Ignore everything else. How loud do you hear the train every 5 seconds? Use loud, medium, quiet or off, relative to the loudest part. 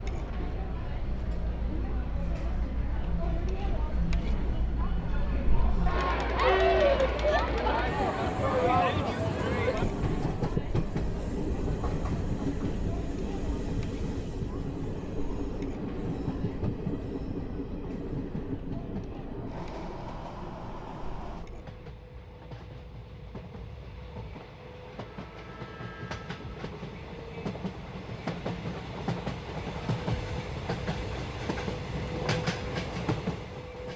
medium, loud, loud, loud, medium, loud, loud.